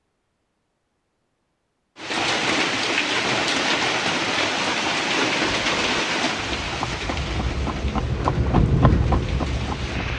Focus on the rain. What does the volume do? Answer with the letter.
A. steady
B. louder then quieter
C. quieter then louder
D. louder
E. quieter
E.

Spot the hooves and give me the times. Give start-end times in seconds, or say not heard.
5.4-10.1.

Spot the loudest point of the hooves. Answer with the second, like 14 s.
9 s.